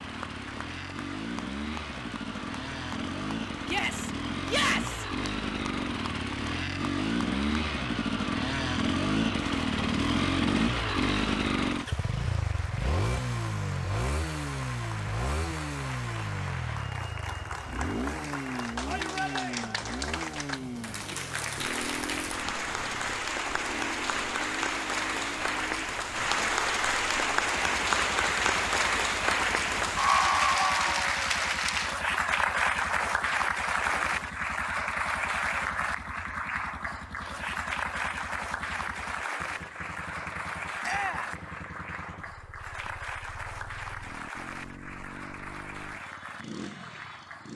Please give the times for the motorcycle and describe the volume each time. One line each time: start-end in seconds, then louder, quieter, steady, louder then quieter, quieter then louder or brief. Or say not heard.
0.0-47.5 quieter.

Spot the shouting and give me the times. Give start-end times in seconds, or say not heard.
3.6-5.0, 18.9-19.7, 40.8-41.4.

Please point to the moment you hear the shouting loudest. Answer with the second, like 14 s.
5 s.